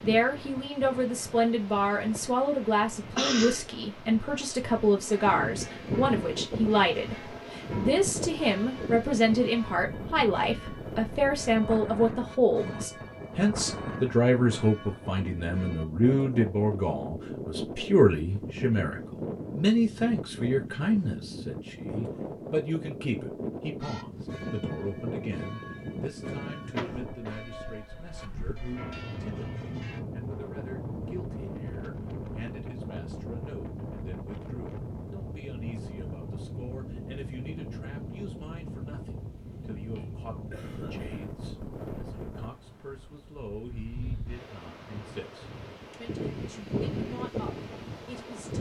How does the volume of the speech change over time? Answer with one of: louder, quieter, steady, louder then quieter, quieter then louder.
quieter.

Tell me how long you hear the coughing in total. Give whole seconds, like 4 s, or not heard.
3 s.